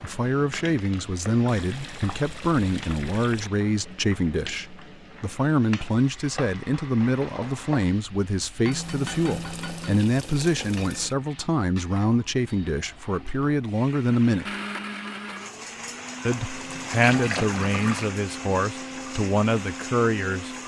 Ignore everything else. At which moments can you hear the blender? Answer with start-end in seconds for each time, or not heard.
14.4-20.6.